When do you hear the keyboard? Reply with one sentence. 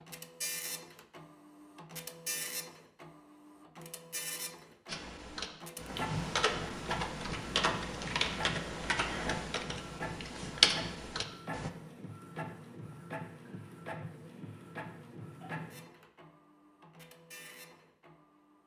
You can hear the keyboard from 4.8 to 11.7 s.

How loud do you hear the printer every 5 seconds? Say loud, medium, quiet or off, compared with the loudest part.
loud, loud, loud, medium.